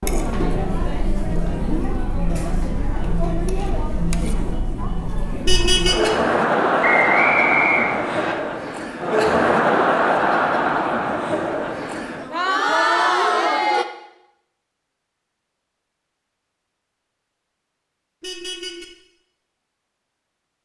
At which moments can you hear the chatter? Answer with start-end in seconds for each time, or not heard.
0.0-13.8.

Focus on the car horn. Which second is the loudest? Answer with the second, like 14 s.
6 s.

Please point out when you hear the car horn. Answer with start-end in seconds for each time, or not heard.
5.5-6.1, 18.2-18.9.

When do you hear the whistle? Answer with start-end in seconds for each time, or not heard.
6.8-8.3.